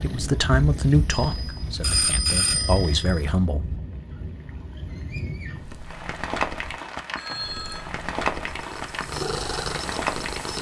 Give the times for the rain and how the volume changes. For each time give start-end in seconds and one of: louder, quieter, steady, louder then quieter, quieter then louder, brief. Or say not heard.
0.0-10.5 louder.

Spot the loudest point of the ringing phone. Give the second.
2 s.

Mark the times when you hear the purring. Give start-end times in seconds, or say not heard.
0.0-3.5, 7.4-10.5.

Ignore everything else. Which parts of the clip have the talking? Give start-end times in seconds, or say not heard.
0.0-3.8.